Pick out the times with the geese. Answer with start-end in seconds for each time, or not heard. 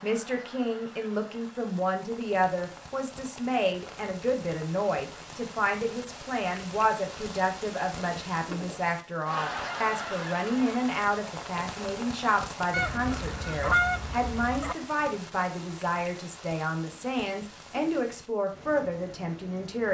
12.7-14.8.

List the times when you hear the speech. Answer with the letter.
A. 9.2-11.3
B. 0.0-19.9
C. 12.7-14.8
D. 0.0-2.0
B.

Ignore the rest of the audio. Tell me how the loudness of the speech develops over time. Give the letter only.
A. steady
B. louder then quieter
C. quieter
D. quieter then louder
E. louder
A.